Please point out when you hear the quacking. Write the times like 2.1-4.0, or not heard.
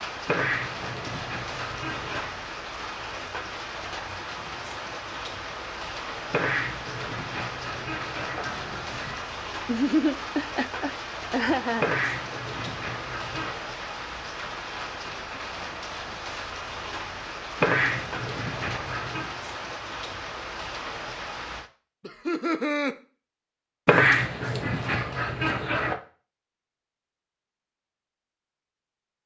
0.2-2.4, 6.3-9.2, 11.8-13.6, 17.6-19.3, 23.9-25.9.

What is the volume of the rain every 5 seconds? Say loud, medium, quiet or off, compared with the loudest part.
loud, loud, loud, loud, loud, off.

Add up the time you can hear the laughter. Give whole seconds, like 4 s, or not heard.
3 s.